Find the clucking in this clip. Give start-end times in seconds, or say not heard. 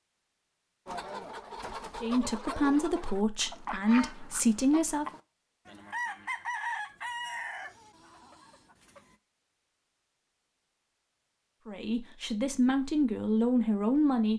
0.8-9.2.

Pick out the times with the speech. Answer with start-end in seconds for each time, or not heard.
2.0-5.0, 11.7-14.3.